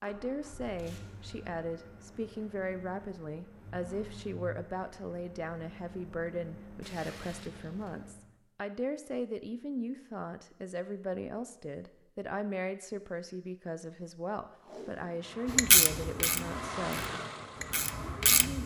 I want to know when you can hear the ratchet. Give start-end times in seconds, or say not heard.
15.4-18.6.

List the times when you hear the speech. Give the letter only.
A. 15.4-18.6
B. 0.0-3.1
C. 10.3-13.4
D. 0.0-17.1
D.